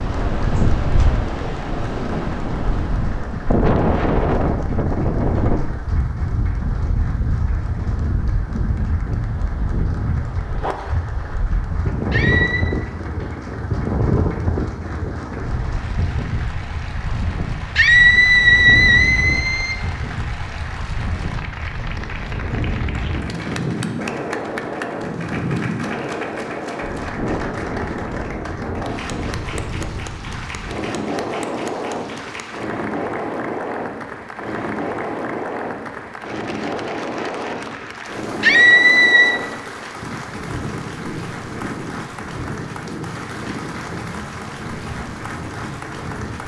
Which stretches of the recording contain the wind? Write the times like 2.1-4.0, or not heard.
0.0-46.4.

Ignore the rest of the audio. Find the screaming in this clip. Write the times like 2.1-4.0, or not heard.
12.1-12.7, 17.8-19.8, 38.4-39.4.